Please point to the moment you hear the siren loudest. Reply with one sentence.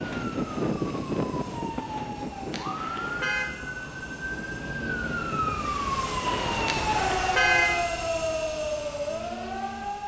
The loudest moment of the siren is at 7 seconds.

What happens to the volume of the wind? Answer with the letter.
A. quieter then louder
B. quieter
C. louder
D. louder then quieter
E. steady
A.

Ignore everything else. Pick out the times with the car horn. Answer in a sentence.
The car horn can be heard from 2.5 to 3.5 s and from 6.7 to 7.8 s.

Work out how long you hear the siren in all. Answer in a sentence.
You can hear the siren for 10 seconds altogether.